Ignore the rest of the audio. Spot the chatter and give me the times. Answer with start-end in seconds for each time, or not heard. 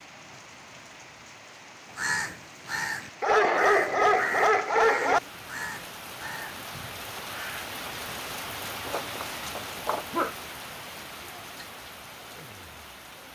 not heard.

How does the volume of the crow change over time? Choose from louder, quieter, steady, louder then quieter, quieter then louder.
quieter.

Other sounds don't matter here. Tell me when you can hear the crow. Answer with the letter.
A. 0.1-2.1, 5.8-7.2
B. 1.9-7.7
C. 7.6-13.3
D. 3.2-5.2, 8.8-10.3
B.